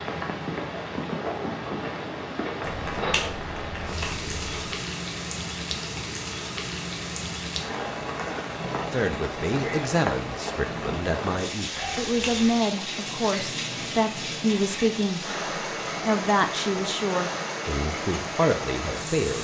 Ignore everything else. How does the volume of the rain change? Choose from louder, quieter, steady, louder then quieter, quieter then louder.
steady.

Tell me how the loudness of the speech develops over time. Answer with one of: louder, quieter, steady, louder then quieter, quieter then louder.
steady.